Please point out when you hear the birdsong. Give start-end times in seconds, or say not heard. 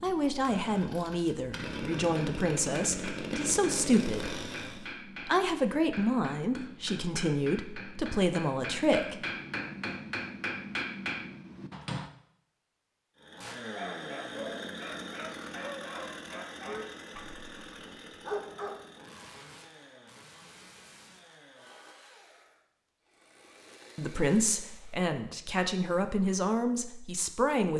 not heard.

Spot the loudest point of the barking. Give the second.
18 s.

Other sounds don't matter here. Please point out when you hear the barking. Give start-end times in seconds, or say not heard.
13.8-18.8.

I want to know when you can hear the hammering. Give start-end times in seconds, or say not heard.
2.1-12.1.